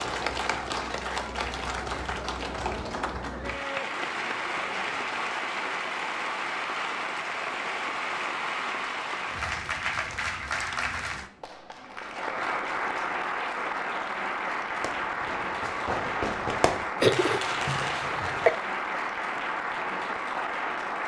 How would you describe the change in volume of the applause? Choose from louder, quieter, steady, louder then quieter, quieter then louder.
steady.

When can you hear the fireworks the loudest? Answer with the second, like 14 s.
17 s.